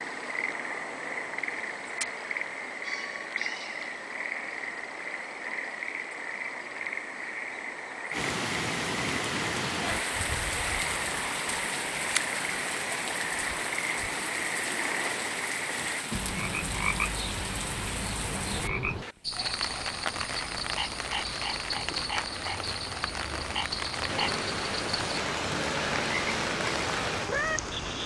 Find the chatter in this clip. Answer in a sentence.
The chatter can't be heard in this clip.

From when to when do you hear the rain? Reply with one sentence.
The rain can be heard from 8.1 to 28.0 s.